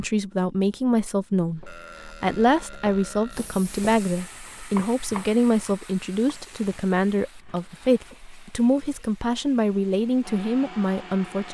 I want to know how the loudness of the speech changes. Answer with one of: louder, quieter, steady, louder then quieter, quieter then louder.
steady.